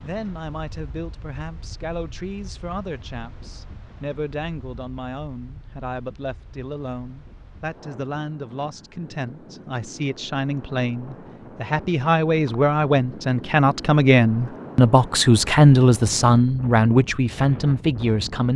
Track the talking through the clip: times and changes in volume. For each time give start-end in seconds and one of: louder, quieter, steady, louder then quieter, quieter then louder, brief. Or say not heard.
0.0-18.5 louder.